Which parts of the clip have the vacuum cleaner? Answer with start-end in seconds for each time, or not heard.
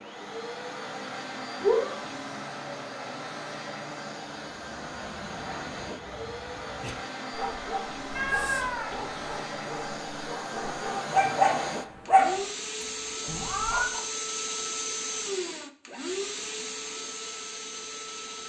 0.0-18.4.